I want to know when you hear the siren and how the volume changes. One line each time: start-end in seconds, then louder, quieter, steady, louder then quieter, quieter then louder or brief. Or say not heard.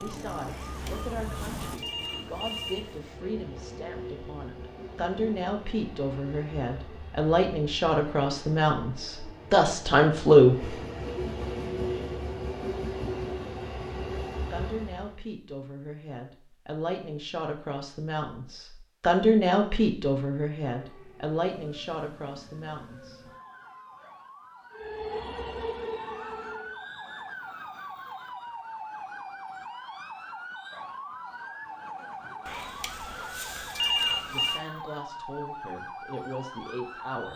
0.0-1.8 brief
20.6-37.3 louder.